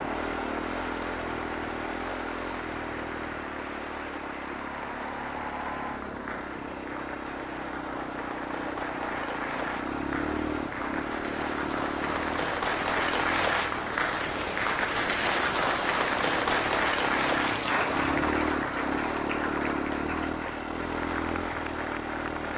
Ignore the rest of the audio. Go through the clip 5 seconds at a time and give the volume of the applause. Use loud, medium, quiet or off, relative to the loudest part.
medium, medium, loud, loud, medium.